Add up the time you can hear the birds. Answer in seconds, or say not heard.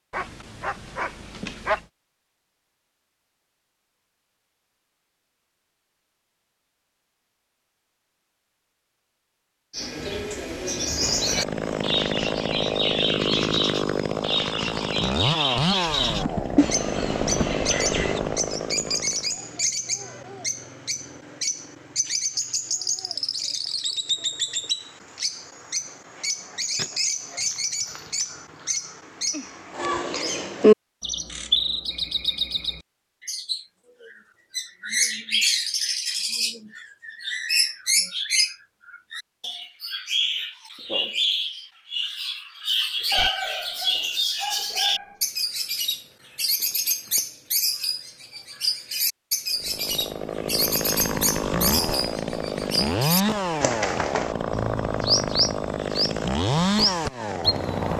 48 s.